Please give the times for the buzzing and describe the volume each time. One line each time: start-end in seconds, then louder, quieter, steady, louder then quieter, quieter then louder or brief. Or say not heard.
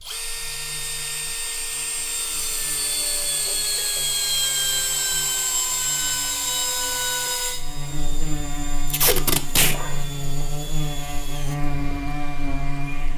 0.0-13.1 louder.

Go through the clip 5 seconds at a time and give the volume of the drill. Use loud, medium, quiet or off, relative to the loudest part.
loud, loud, quiet.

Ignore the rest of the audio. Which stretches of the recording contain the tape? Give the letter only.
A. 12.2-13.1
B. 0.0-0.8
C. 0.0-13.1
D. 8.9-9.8
D.